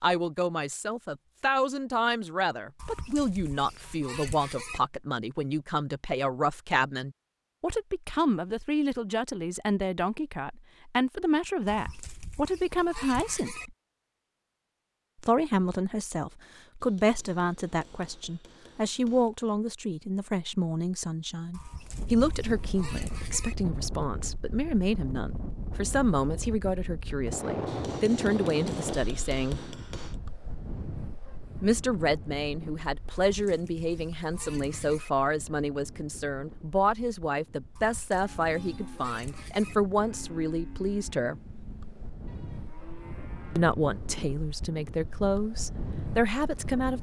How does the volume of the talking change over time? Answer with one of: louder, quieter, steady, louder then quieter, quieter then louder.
steady.